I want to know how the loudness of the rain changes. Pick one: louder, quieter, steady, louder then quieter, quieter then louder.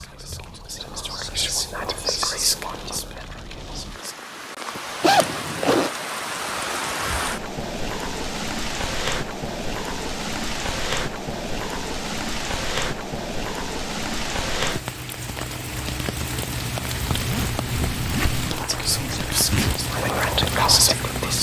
louder.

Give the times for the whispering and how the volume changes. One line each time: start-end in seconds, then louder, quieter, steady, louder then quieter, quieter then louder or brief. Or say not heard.
0.0-4.2 louder then quieter
18.5-21.3 brief.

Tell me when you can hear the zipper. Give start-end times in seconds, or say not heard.
5.0-5.9, 17.1-19.8.